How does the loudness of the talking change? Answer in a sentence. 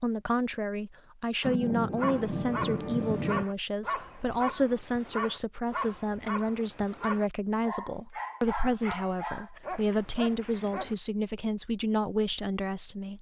The loudness of the talking stays about the same.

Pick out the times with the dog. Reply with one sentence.
You can hear the dog from 1.4 to 10.9 s.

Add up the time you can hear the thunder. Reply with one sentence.
You can hear the thunder for 2 seconds altogether.